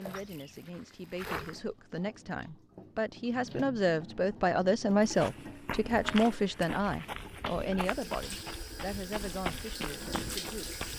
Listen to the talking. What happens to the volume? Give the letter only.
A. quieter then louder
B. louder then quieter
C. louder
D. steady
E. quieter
B.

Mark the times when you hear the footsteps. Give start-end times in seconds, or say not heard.
0.0-1.6, 5.0-10.9.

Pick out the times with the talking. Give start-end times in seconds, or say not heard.
0.0-10.8.